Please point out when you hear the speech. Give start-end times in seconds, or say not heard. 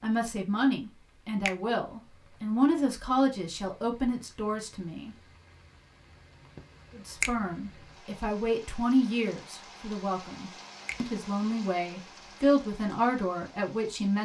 0.0-5.2, 7.0-14.2.